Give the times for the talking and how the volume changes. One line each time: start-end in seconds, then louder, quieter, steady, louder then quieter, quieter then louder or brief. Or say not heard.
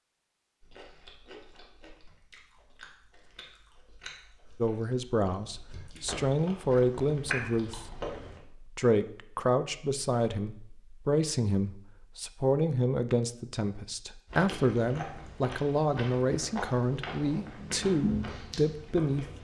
4.6-19.3 steady.